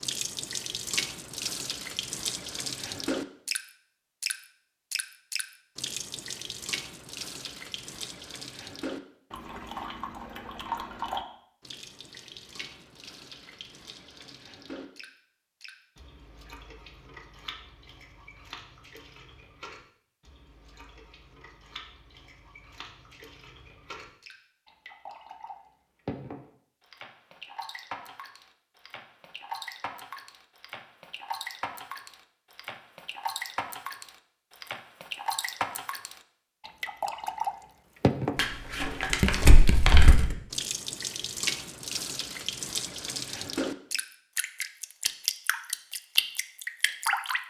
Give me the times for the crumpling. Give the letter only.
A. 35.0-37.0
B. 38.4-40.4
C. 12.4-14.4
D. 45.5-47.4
B.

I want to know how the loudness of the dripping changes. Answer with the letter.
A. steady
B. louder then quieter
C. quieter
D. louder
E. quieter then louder
E.